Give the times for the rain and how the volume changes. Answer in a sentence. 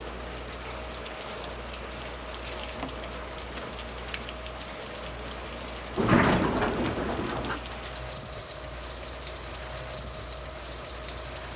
You can hear the rain from 0.0 to 11.5 s, at a steady volume.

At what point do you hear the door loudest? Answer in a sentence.
The volume of the door peaks at 6 seconds.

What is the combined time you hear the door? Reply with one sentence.
The door can be heard for 3 seconds in total.